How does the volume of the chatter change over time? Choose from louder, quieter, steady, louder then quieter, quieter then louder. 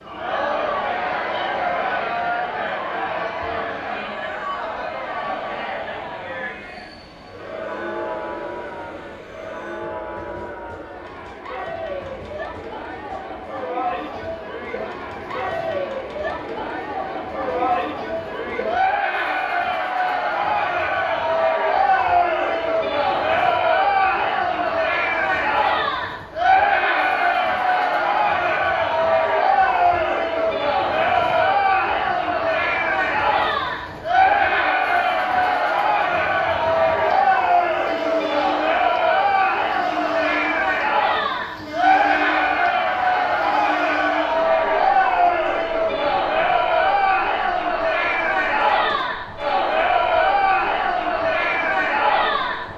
louder.